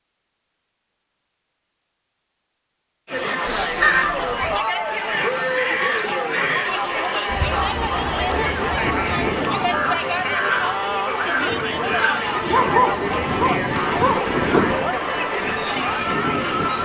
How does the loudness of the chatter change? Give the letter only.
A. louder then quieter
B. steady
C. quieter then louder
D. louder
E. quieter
B.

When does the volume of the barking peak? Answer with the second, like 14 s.
13 s.